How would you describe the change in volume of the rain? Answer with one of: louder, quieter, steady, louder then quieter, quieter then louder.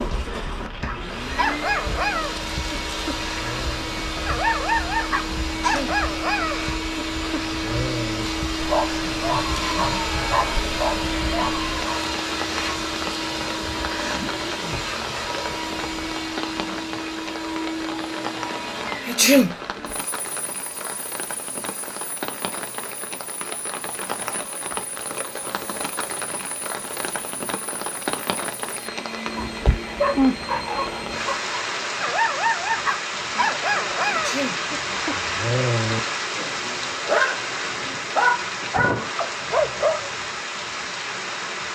louder.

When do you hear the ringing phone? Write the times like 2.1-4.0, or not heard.
not heard.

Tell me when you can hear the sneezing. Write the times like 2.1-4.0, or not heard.
5.5-6.0, 19.1-19.6, 34.1-34.6.